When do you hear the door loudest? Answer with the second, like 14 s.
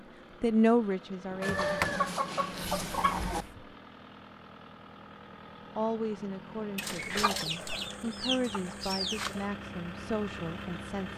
2 s.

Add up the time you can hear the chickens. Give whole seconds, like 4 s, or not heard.
5 s.